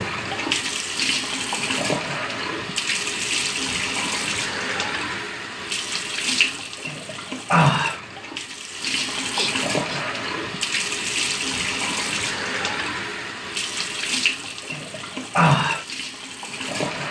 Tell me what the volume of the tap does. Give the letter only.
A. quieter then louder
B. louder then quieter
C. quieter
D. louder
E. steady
E.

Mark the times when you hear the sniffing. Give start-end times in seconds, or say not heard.
9.3-10.1.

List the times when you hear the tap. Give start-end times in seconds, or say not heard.
0.0-17.0.